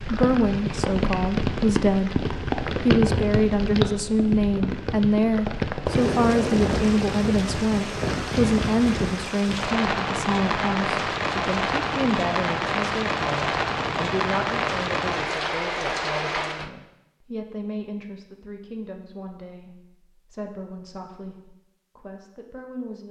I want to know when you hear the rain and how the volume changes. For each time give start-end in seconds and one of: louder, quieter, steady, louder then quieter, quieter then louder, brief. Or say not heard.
0.0-16.7 steady.